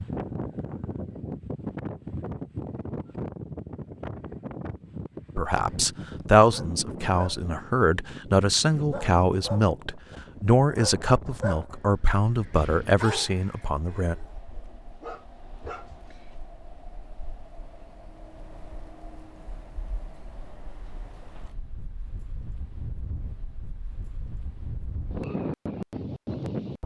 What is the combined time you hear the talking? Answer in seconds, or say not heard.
9 s.